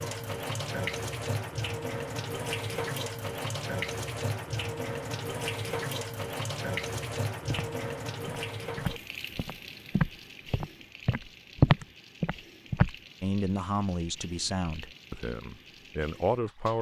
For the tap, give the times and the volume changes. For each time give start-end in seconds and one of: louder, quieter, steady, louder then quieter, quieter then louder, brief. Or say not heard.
0.0-16.7 quieter.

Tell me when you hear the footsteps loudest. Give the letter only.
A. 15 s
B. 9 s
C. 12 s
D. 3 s
C.